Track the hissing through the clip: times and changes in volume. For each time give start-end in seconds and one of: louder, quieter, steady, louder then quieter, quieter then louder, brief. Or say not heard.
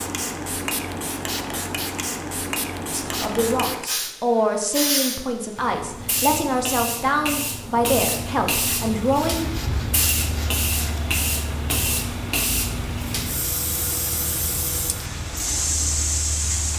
0.0-16.7 steady.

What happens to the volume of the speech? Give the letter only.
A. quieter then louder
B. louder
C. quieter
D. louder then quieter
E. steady
E.